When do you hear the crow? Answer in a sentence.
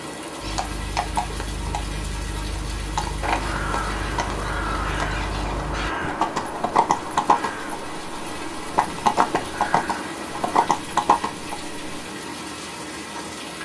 The crow can be heard from 3.2 to 10.6 s.